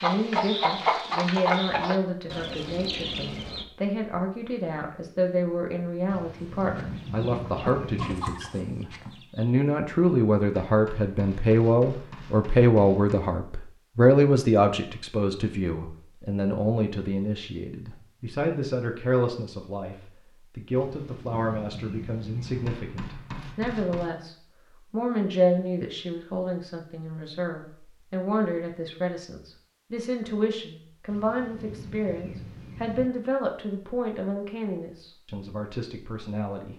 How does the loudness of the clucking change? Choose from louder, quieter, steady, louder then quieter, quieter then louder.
quieter.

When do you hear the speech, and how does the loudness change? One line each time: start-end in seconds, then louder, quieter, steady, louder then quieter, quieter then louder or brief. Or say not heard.
0.0-36.7 louder then quieter.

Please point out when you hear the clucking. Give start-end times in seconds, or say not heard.
0.0-3.6, 6.6-9.6.